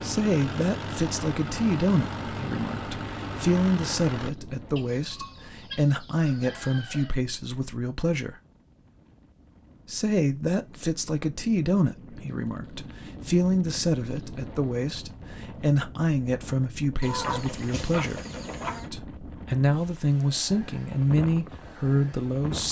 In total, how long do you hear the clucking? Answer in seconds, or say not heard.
4 s.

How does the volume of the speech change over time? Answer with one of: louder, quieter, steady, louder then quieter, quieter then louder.
steady.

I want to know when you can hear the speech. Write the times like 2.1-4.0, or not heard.
0.0-8.4, 9.8-18.2, 18.9-22.6.